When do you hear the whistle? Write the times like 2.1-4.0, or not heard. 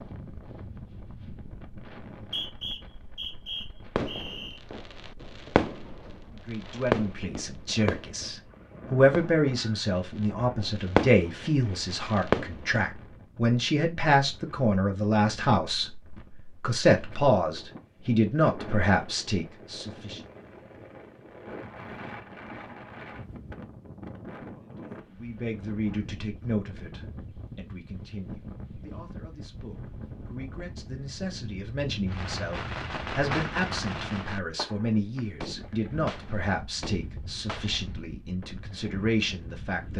2.1-4.6.